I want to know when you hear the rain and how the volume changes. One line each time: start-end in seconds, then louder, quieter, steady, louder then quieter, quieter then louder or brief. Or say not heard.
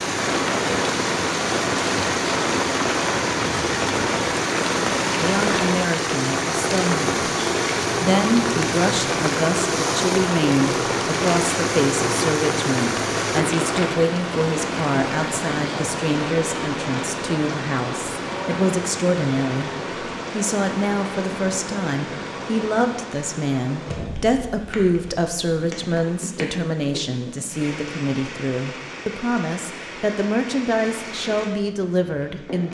0.0-32.6 quieter.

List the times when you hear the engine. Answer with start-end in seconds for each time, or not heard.
0.0-13.4.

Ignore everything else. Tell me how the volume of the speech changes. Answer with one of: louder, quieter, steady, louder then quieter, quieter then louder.
steady.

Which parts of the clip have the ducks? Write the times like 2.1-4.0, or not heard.
not heard.